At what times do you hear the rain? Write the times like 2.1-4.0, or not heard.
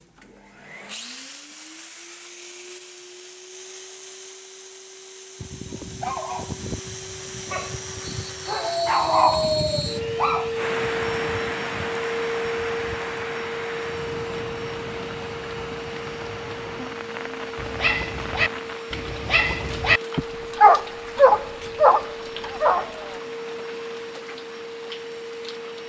10.6-25.8.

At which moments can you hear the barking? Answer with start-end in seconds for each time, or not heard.
5.4-11.3, 17.6-23.2.